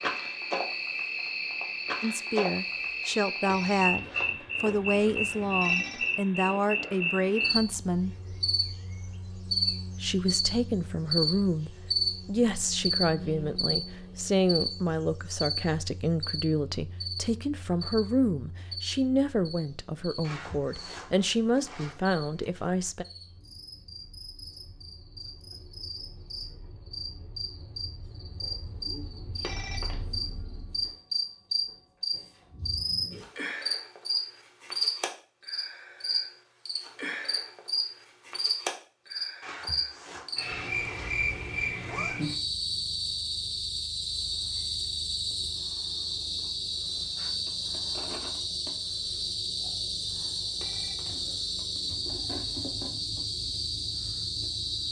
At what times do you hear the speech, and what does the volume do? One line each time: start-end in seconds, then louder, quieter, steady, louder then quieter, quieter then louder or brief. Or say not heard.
2.0-8.2 steady
10.0-23.1 steady.